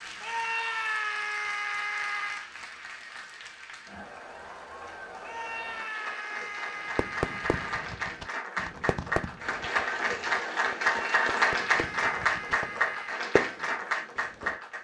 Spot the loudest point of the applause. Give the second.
11 s.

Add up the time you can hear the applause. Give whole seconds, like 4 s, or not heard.
15 s.